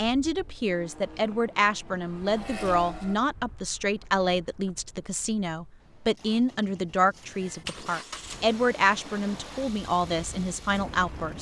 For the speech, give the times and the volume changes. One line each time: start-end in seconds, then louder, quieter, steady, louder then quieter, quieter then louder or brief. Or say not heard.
0.0-11.3 steady.